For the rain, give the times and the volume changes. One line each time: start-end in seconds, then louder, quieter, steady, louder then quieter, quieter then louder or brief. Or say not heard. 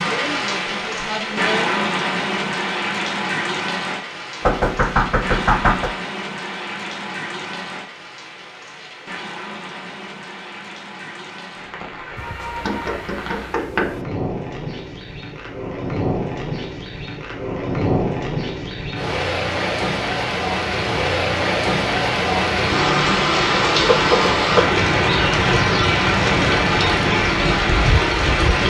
0.0-28.6 quieter then louder.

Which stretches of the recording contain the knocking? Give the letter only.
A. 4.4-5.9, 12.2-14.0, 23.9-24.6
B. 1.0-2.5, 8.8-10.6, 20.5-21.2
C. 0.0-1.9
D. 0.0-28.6
A.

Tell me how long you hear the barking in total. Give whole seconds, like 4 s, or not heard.
not heard.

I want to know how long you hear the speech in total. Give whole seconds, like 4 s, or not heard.
2 s.